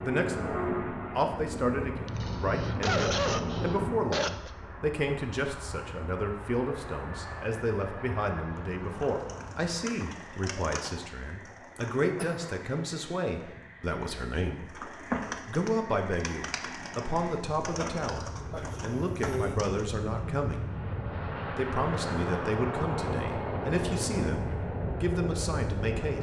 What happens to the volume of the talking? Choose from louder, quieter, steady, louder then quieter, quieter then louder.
steady.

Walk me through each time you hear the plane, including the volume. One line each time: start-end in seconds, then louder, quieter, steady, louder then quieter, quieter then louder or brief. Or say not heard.
0.0-26.1 quieter then louder.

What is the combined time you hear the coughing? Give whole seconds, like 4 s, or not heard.
4 s.